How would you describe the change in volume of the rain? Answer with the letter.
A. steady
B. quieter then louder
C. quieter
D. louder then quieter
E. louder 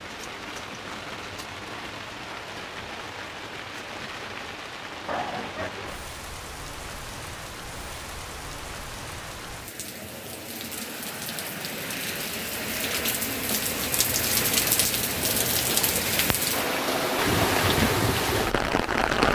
E.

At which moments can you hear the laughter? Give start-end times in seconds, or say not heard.
5.0-6.0.